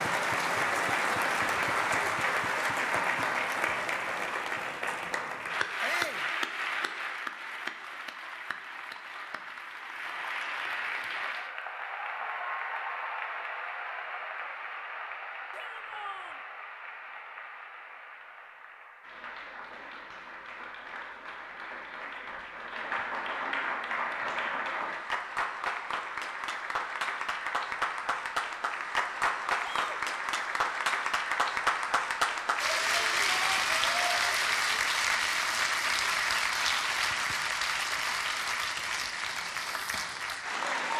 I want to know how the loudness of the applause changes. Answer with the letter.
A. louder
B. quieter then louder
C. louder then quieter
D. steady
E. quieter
B.